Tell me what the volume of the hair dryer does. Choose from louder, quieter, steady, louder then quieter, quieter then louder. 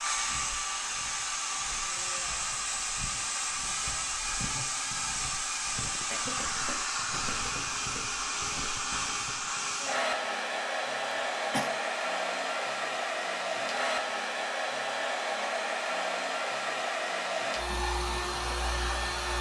steady.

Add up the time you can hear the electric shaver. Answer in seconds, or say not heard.
not heard.